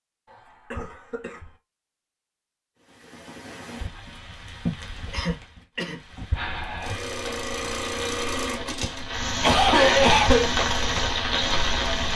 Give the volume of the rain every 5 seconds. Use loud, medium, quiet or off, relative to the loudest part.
medium, medium, loud.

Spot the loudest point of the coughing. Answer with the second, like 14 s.
10 s.